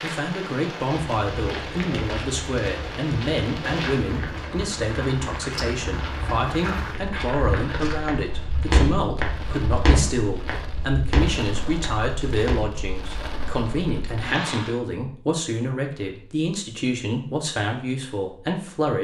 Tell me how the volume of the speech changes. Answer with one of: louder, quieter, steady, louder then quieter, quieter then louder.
steady.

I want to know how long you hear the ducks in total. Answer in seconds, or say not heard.
not heard.